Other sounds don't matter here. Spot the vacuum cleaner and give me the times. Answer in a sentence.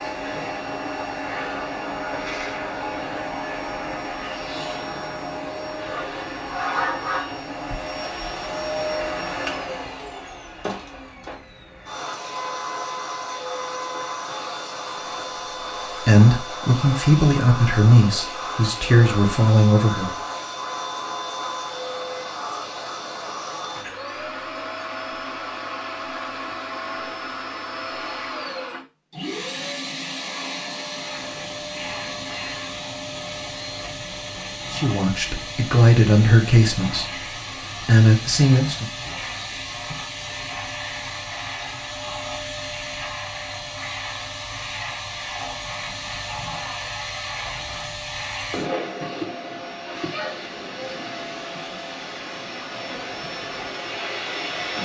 You can hear the vacuum cleaner from 0.0 to 54.8 s.